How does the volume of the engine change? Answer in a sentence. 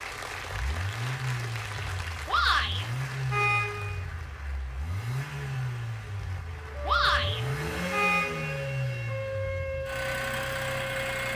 The loudness of the engine stays about the same.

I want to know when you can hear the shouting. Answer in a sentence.
You can hear the shouting from 2.2 to 2.9 s and from 6.8 to 7.4 s.